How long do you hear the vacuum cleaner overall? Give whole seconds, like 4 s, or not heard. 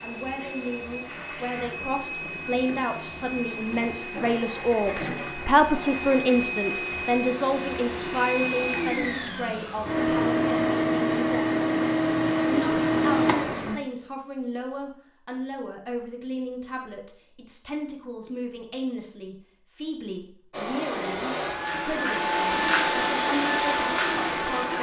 18 s.